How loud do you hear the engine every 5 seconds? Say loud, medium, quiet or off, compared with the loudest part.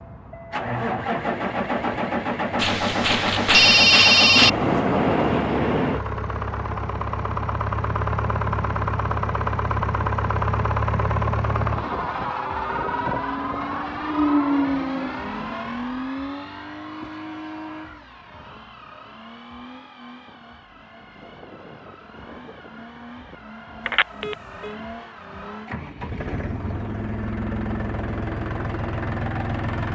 loud, loud, loud, medium, quiet, medium.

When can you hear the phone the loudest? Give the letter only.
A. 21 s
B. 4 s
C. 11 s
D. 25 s
B.